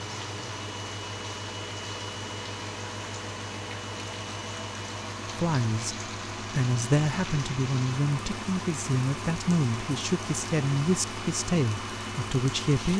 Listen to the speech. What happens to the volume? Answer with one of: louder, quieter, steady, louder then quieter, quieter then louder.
steady.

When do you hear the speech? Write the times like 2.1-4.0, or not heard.
5.3-12.9.